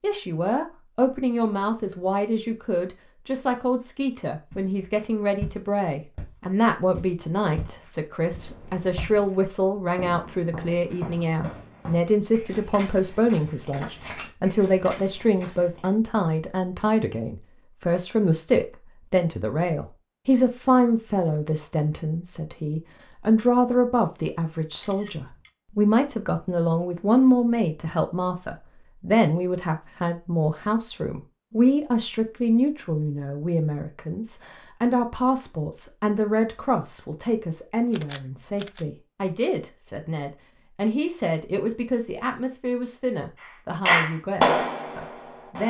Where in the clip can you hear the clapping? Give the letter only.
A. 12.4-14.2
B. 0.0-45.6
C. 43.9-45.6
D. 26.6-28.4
C.